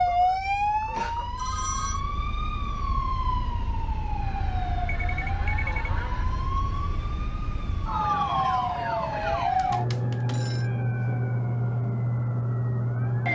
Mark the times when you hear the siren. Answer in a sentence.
You can hear the siren from 0.0 to 13.3 s.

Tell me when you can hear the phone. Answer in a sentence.
The phone can be heard from 0.9 to 2.0 s, from 4.8 to 5.9 s and from 9.6 to 10.7 s.